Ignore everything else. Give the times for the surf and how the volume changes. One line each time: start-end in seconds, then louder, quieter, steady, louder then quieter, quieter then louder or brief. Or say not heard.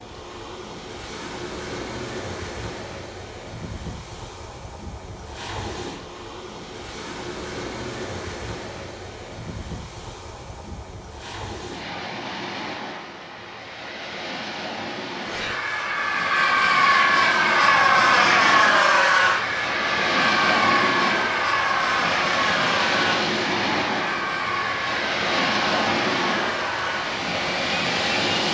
0.0-28.4 louder.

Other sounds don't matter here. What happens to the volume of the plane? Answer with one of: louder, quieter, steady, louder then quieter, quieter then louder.
quieter.